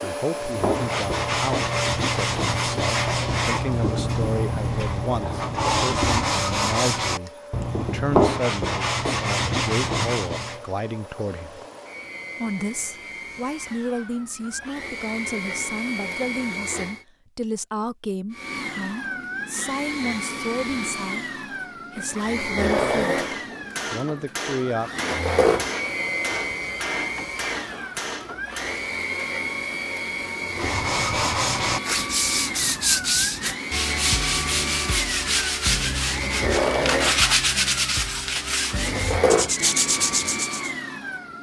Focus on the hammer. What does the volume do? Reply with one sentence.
The loudness of the hammer stays about the same.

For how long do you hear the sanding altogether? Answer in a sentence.
You can hear the sanding for 20 seconds altogether.